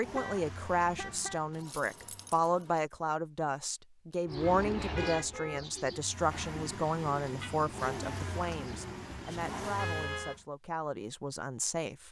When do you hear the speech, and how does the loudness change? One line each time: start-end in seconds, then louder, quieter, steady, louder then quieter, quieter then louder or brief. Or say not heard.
0.0-12.0 quieter.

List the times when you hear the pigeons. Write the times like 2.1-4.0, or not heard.
4.2-9.8.